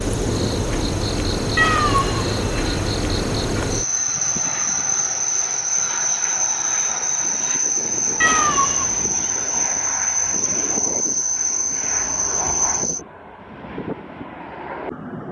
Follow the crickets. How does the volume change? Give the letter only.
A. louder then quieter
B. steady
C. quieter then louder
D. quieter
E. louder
B.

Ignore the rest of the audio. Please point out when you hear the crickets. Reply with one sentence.
You can hear the crickets from 0.0 to 13.0 s.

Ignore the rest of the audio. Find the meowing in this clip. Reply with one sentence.
You can hear the meowing from 1.6 to 2.2 s and from 8.2 to 9.3 s.